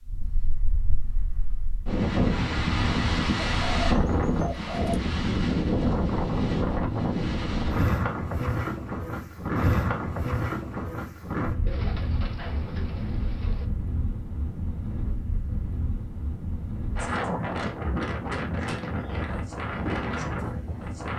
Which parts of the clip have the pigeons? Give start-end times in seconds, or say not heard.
3.6-5.0, 11.7-13.7.